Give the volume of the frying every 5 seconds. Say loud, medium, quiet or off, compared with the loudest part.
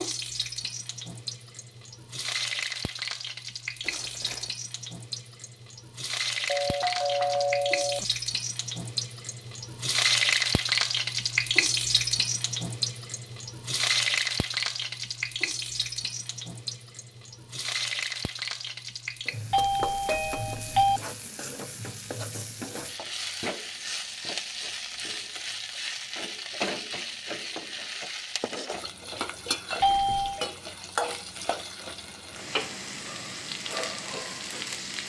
medium, medium, loud, medium, medium, medium, medium.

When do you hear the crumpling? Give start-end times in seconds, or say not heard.
3.8-4.5.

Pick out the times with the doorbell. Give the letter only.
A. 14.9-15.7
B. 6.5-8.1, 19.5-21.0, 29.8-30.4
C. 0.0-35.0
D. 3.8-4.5
B.